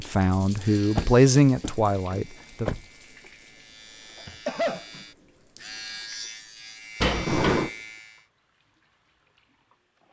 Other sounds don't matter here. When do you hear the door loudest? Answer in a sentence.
The volume of the door peaks at 7 seconds.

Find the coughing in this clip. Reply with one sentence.
You can hear the coughing from 4.2 to 4.8 s.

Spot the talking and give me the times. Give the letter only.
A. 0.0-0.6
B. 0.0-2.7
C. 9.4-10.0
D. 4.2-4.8
B.